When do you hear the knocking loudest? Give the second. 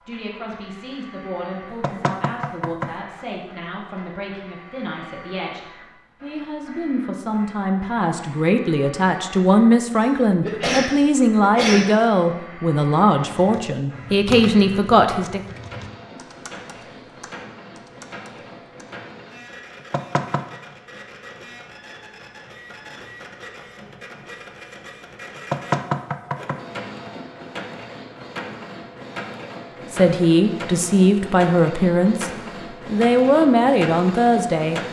26 s.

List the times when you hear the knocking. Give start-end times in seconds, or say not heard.
1.8-3.0, 19.9-20.6, 25.5-26.6.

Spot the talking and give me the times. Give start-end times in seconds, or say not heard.
0.1-15.4, 29.9-34.8.